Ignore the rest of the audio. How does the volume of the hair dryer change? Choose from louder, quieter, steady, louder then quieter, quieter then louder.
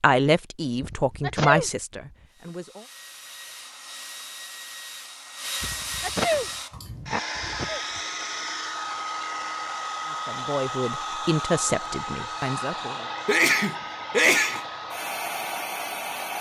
louder.